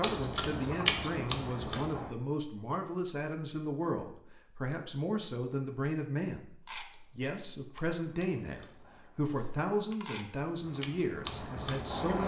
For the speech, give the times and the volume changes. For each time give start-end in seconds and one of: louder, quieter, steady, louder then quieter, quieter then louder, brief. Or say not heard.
0.0-12.2 steady.